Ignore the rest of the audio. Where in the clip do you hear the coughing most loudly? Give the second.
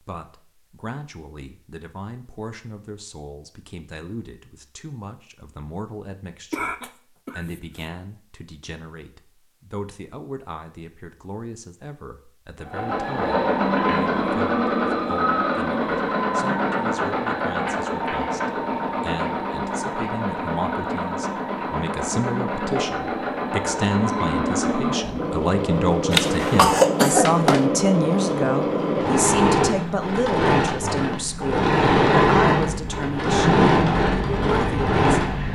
27 s.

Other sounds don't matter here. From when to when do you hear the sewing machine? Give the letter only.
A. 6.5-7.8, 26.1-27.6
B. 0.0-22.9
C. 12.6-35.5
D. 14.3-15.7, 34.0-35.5
C.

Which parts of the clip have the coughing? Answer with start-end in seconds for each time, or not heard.
6.5-7.8, 26.1-27.6.